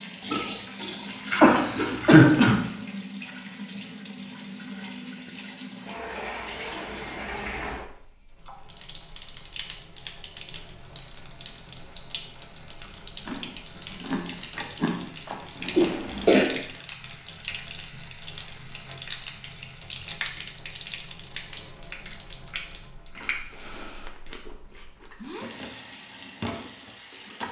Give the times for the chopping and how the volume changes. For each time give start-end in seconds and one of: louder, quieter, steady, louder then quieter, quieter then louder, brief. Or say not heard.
not heard.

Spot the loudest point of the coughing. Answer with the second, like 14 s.
2 s.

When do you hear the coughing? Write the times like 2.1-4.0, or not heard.
1.4-2.6, 15.8-16.4.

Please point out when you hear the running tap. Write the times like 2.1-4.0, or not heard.
0.0-27.4.